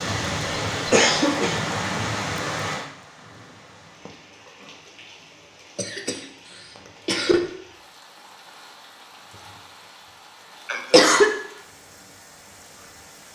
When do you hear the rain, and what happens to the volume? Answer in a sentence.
The rain can be heard from 0.0 to 13.3 s, getting quieter.